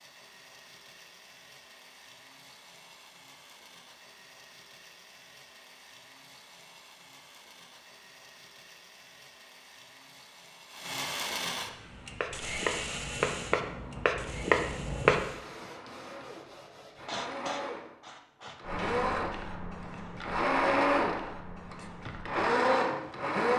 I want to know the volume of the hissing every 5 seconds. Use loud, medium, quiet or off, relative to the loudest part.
off, off, loud, loud, quiet.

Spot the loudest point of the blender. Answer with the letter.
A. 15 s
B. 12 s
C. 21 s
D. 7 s
C.